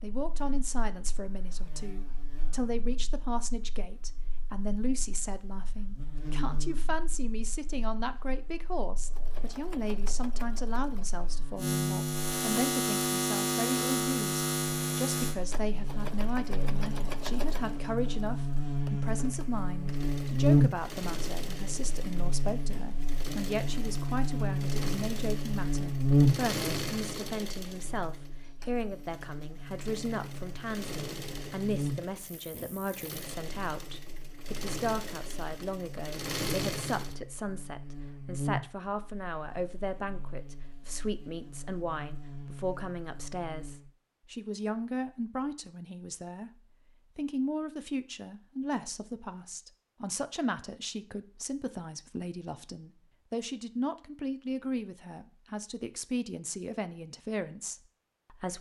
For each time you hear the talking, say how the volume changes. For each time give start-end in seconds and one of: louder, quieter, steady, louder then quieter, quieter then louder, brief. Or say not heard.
0.0-46.5 steady
47.1-58.5 steady.